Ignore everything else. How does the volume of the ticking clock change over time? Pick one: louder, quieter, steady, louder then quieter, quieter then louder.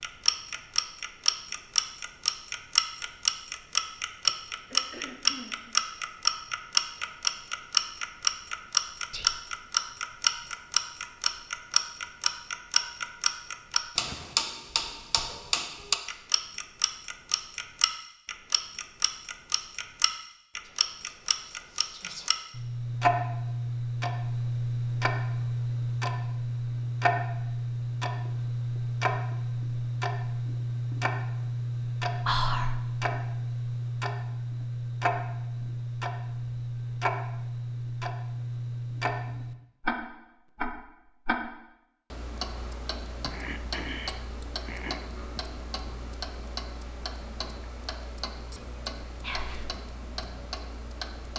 quieter.